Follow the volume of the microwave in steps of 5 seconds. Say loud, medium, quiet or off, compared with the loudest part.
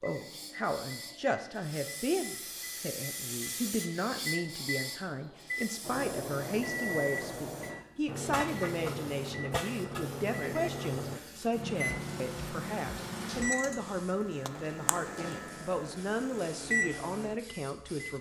medium, loud, loud, loud.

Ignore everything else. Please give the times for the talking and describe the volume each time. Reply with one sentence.
The talking can be heard from 0.0 to 18.1 s, at a steady volume.